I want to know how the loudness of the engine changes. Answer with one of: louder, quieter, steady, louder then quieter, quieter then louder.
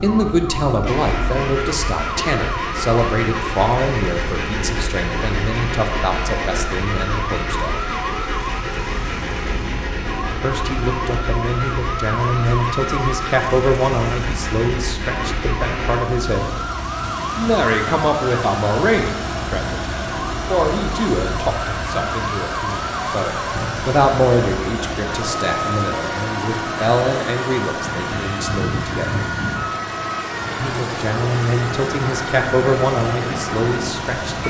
steady.